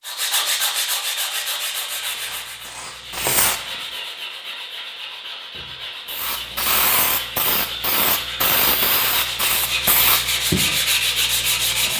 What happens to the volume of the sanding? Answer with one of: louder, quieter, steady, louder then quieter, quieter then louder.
quieter then louder.